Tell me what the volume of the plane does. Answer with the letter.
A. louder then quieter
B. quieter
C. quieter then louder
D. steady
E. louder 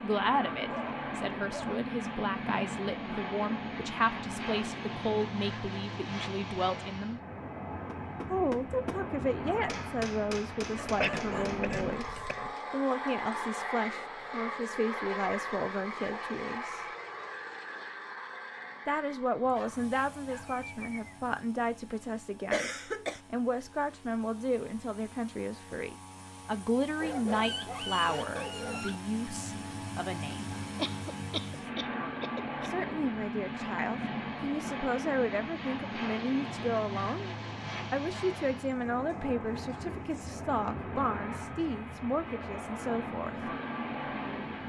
C.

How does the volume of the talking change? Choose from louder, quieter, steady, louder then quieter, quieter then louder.
steady.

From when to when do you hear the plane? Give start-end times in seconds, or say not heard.
0.0-44.6.